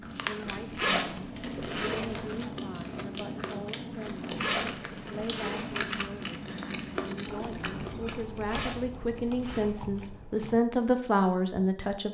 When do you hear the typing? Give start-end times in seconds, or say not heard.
4.5-10.6.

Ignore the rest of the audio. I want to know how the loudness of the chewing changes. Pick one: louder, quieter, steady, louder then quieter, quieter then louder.
steady.